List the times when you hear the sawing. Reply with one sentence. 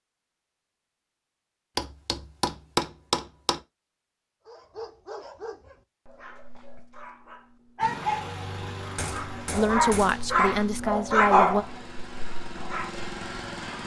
The sawing can't be heard in this clip.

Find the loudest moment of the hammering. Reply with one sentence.
The loudest moment of the hammering is at 3 seconds.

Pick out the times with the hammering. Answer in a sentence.
You can hear the hammering from 1.8 to 3.6 s and from 8.8 to 10.3 s.